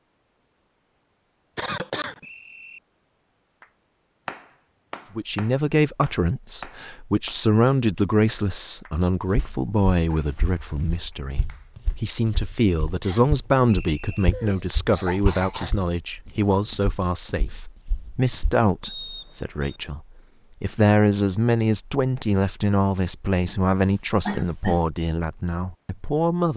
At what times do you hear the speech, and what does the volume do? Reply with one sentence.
The speech can be heard from 5.2 to 26.5 s, at a steady volume.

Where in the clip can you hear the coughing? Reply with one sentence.
You can hear the coughing from 1.6 to 2.2 s, from 14.1 to 15.8 s and from 23.8 to 24.9 s.